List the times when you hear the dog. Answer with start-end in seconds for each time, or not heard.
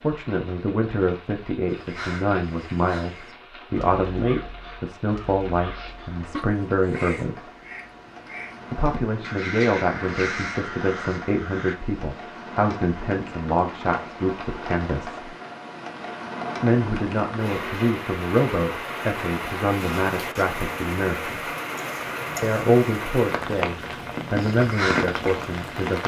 not heard.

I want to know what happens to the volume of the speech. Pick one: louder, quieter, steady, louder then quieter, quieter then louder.
steady.